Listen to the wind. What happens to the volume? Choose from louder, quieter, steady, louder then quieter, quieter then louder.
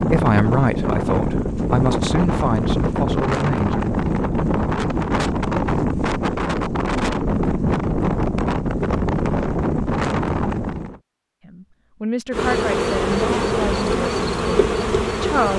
steady.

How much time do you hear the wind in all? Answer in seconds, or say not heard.
11 s.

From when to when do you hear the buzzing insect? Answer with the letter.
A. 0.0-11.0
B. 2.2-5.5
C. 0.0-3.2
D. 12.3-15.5
D.